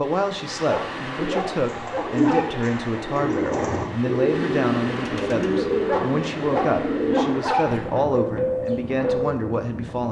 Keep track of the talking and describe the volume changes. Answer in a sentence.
The loudness of the talking stays about the same.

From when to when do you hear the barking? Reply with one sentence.
You can hear the barking from 0.7 to 2.5 s and from 5.8 to 7.7 s.